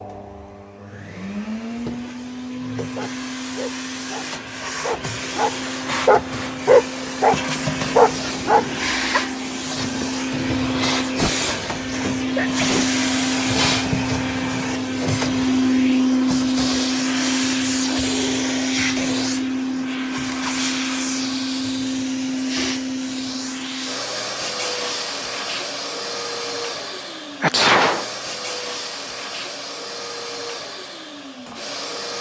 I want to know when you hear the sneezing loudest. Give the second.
28 s.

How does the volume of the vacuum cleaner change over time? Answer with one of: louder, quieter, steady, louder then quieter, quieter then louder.
louder then quieter.